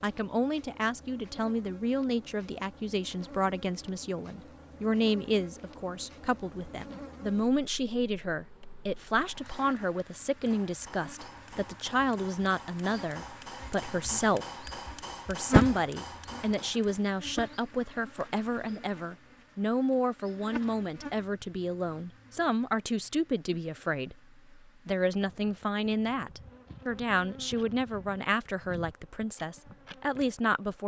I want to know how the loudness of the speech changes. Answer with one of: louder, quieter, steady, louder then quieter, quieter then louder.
steady.